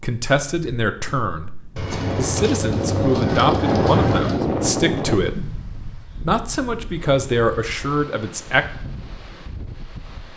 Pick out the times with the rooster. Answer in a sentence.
You can hear the rooster from 1.8 to 4.4 s.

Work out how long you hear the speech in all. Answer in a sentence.
The speech can be heard for 9 seconds in total.